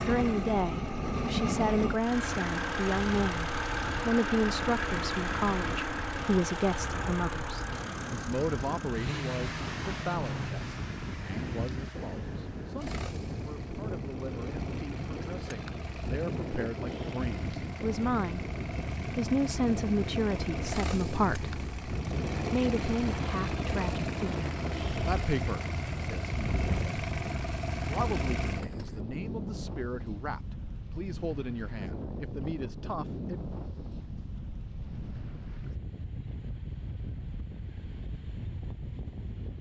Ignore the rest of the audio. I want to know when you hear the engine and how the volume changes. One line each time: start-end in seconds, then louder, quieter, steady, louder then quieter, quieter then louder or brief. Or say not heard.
0.0-29.0 quieter then louder.